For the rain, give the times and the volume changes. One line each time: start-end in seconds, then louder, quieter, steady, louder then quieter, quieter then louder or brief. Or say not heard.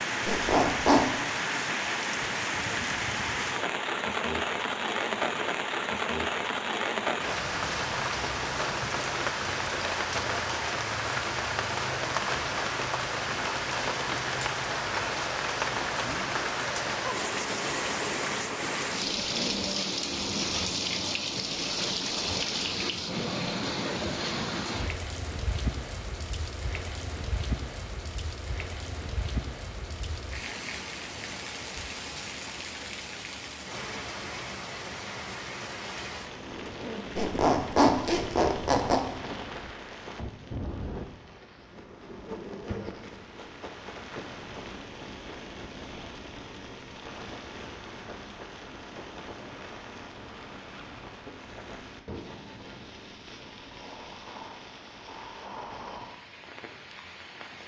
0.0-57.6 quieter.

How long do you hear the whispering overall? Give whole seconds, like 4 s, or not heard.
not heard.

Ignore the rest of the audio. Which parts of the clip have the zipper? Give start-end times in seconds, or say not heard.
0.2-1.1, 37.1-39.0.